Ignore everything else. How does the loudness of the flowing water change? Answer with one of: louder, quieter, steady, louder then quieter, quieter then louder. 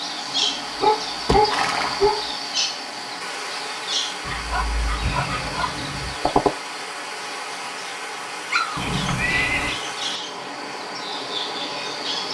steady.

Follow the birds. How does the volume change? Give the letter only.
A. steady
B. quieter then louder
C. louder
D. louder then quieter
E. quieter
B.